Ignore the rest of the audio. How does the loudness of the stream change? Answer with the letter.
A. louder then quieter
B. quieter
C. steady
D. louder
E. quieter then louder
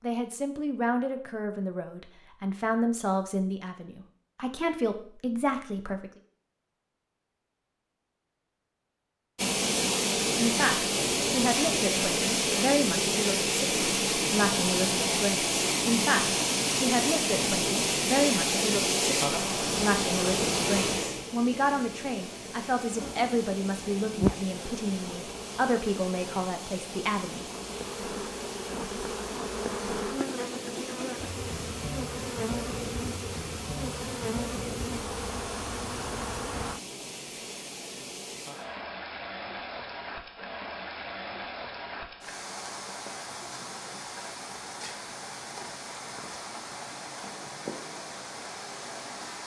B.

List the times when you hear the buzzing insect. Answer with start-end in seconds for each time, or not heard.
22.9-36.8.